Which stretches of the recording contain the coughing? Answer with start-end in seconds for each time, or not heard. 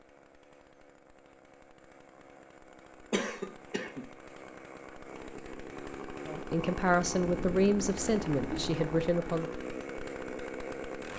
3.1-4.0.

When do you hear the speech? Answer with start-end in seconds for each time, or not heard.
6.2-9.5.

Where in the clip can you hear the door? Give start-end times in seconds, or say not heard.
not heard.